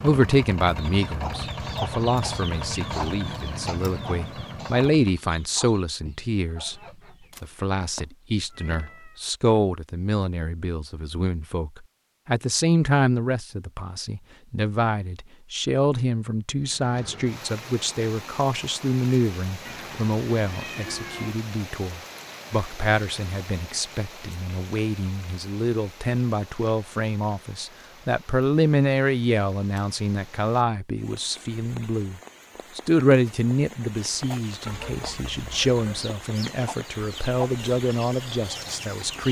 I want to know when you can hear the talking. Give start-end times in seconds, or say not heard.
0.0-6.8, 7.4-39.2.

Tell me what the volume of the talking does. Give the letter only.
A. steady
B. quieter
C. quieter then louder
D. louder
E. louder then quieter
A.